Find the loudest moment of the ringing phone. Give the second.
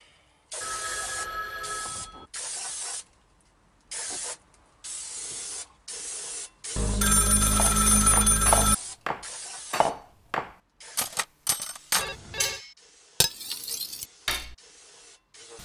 8 s.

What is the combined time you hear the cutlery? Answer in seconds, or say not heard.
7 s.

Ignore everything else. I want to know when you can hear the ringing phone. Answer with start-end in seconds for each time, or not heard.
0.6-2.3, 6.8-8.8, 11.9-12.7.